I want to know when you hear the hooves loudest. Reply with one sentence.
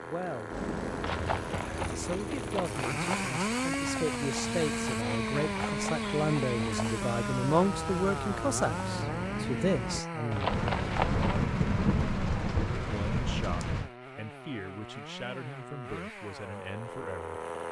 The volume of the hooves peaks at 11 seconds.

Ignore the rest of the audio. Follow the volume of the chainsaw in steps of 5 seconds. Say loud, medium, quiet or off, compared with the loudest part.
loud, loud, medium, medium.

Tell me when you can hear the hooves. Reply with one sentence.
The hooves can be heard from 0.5 to 11.4 s.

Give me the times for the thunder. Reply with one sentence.
You can hear the thunder from 10.4 to 13.9 s.